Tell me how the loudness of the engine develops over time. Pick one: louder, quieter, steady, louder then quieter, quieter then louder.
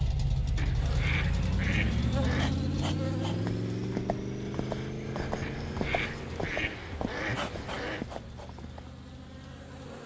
quieter.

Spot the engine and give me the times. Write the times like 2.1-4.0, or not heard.
0.0-10.0.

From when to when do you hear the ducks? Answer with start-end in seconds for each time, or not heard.
0.6-2.5, 5.4-8.1.